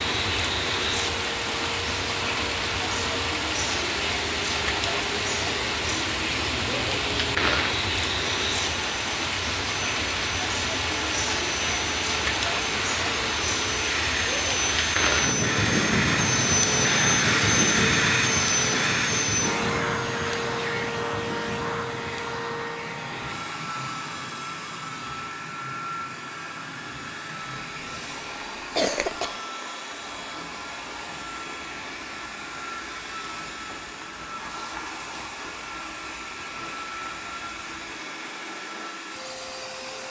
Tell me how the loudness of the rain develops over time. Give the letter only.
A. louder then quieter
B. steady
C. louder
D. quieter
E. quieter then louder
D.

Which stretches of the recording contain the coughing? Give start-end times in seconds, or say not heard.
27.9-29.4.